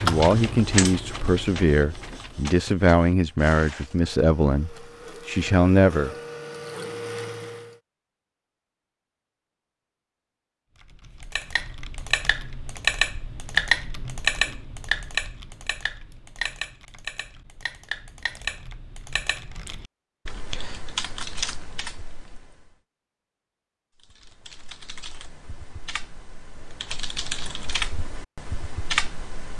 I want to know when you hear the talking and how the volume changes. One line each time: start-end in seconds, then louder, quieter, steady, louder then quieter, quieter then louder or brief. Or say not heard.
0.0-6.1 steady.